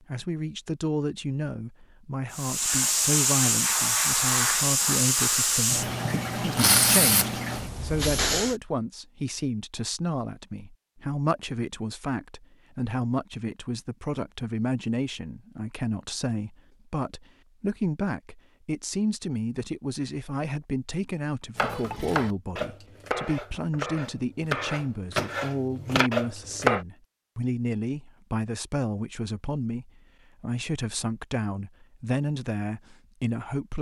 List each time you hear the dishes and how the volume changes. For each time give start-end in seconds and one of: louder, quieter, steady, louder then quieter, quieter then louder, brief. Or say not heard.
not heard.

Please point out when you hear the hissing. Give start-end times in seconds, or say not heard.
2.3-8.6.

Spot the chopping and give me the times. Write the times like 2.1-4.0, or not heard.
21.6-26.9.